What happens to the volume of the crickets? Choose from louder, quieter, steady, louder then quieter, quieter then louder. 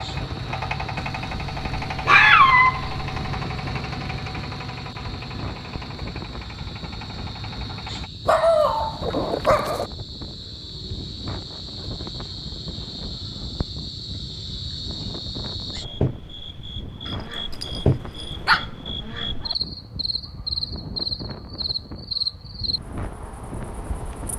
louder.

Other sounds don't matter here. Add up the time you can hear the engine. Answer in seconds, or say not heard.
8 s.